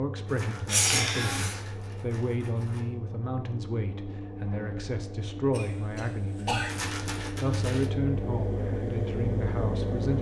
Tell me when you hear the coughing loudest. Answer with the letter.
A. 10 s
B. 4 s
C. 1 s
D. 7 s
C.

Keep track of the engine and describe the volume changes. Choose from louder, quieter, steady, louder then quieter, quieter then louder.
louder.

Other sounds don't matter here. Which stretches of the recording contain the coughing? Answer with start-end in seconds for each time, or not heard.
0.7-1.6, 5.5-6.8.